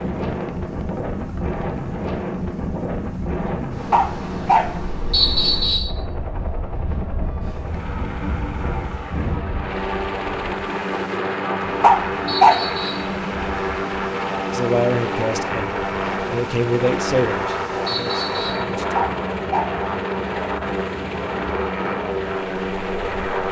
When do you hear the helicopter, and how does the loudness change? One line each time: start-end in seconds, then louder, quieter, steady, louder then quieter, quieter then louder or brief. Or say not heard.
0.0-23.4 louder.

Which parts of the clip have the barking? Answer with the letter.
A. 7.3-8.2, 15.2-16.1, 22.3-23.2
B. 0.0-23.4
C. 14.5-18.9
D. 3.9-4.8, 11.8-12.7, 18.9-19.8
D.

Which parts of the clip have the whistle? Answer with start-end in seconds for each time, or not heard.
5.1-5.9, 12.2-13.1, 17.9-18.7.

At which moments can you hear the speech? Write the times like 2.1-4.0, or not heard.
14.5-18.9.